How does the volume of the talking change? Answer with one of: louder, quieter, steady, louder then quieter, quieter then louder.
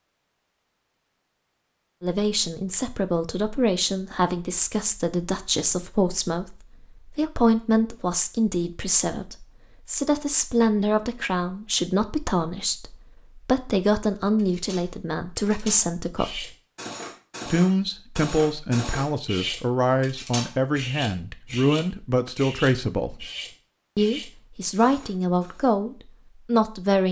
steady.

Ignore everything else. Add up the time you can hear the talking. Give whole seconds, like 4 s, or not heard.
23 s.